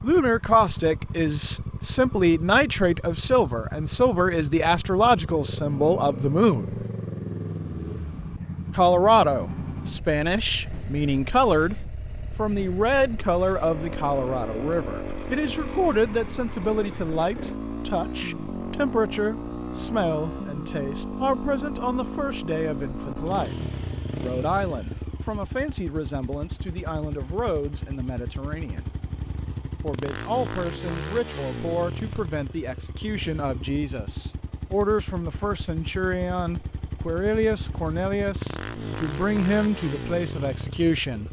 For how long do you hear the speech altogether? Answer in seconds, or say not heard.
38 s.